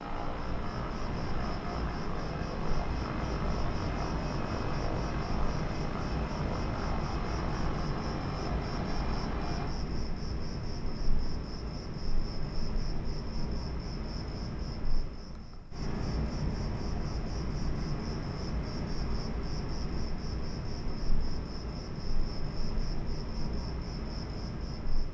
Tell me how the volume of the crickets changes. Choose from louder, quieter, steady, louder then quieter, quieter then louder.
steady.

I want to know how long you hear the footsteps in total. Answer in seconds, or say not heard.
not heard.